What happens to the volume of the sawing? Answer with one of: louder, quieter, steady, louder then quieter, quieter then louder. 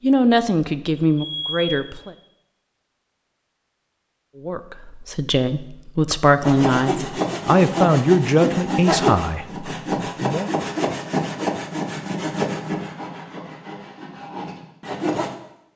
quieter.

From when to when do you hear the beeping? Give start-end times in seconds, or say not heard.
0.9-1.9.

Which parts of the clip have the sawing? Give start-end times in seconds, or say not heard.
6.4-15.3.